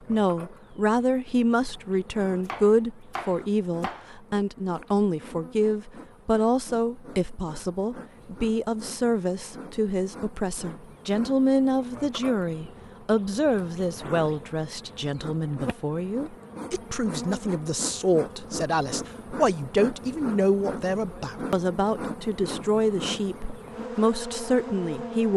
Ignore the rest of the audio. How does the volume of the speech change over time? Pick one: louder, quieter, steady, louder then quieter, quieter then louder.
steady.